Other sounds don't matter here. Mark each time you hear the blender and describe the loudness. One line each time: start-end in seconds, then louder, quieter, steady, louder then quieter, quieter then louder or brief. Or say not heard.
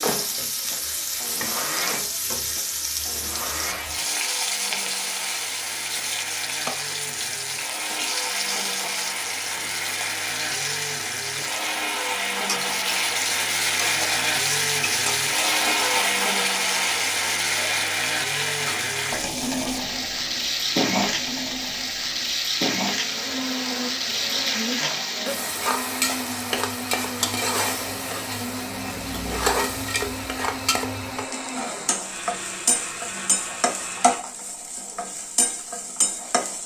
0.0-34.2 louder then quieter.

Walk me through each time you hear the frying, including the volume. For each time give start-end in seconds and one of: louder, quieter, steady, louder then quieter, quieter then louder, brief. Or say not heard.
0.0-36.6 steady.